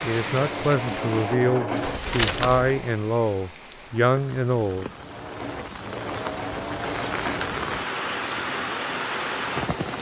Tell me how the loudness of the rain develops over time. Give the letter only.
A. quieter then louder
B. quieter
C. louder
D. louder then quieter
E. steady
A.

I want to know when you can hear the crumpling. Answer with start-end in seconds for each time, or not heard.
1.8-2.8, 6.8-7.5.